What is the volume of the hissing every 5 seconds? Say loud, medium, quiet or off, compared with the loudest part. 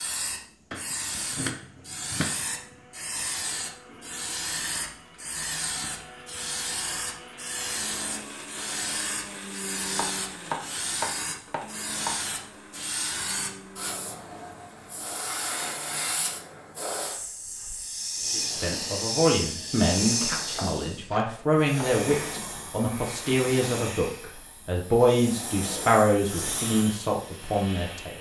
loud, loud, loud, loud, loud, medium.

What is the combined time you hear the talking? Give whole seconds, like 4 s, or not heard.
10 s.